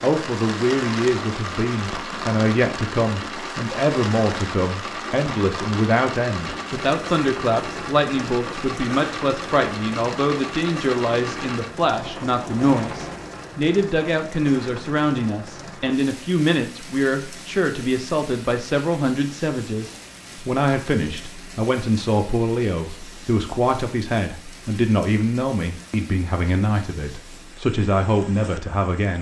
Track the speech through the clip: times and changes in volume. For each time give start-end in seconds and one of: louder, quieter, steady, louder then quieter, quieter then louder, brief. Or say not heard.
0.0-29.1 steady.